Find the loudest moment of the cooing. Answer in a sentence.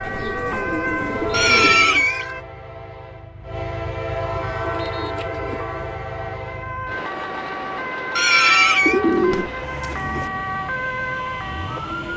The volume of the cooing peaks at 9 seconds.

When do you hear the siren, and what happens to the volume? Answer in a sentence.
The siren can be heard briefly from 0.0 to 2.5 s; and from 4.4 to 12.1 s, getting louder.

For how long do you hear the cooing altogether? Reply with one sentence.
The cooing can be heard for 5 seconds in total.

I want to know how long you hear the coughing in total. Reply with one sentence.
The coughing can be heard for 2 seconds in total.